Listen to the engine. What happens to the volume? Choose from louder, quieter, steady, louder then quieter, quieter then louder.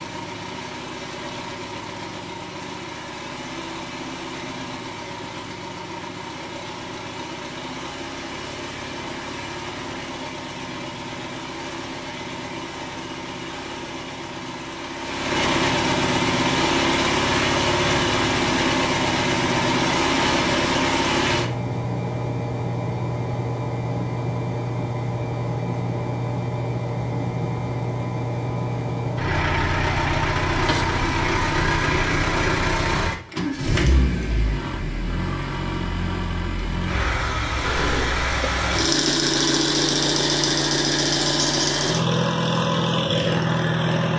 louder.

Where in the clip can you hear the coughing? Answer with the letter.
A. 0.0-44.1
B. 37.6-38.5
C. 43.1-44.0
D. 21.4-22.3
B.